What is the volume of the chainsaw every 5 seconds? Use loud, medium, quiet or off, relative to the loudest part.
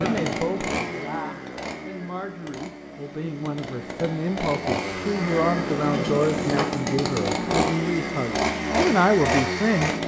medium, loud.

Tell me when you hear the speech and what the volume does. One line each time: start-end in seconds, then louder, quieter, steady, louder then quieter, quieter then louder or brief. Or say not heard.
0.0-9.9 louder.